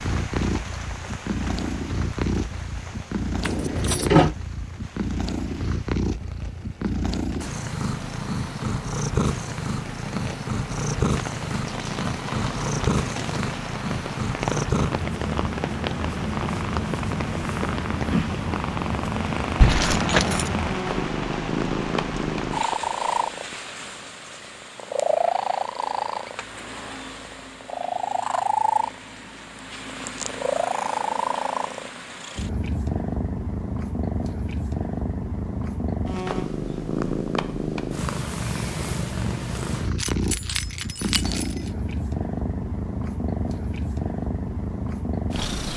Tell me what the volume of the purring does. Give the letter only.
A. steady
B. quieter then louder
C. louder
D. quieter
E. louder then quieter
A.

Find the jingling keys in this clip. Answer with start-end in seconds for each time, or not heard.
3.4-4.3, 19.6-20.5, 40.0-41.5.